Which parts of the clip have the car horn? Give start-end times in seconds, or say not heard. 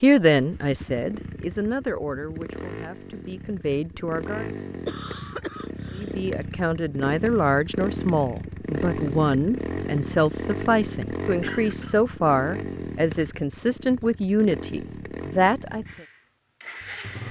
not heard.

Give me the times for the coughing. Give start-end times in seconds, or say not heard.
4.8-6.2, 11.4-12.0.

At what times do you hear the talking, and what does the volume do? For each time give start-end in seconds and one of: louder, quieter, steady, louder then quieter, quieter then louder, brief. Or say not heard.
0.0-4.5 quieter then louder
6.0-16.1 steady.